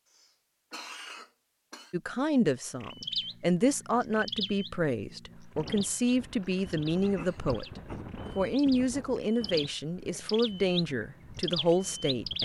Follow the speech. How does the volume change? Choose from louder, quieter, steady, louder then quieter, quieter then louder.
steady.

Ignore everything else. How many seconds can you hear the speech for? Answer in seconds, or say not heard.
10 s.